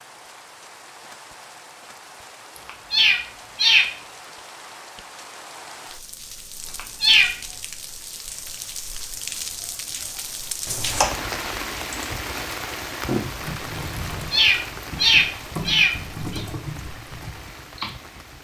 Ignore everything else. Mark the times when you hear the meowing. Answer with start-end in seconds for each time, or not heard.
2.6-3.9, 6.7-7.3, 14.3-16.4.